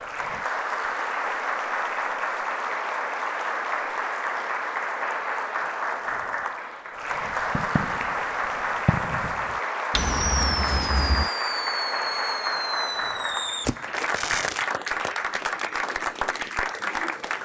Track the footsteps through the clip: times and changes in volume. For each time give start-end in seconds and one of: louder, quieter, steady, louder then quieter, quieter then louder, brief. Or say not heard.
not heard.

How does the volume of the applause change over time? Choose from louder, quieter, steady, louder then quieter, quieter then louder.
steady.